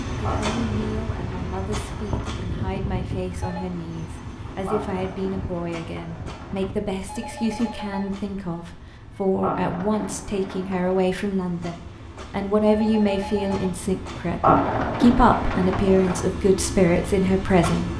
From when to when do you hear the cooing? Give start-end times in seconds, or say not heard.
0.2-2.2, 4.7-6.7, 9.4-11.0, 14.4-16.2.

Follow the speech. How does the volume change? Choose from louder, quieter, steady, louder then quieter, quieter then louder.
louder.